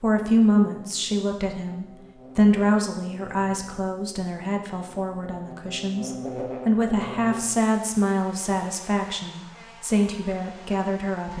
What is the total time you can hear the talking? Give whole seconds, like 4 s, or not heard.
11 s.